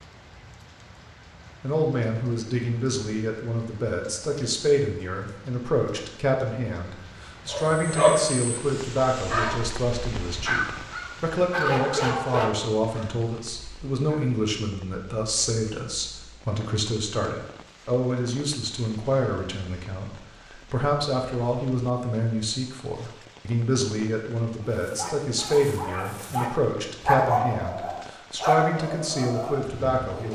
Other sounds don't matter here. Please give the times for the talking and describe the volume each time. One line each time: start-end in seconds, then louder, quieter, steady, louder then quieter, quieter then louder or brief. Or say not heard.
1.6-30.3 steady.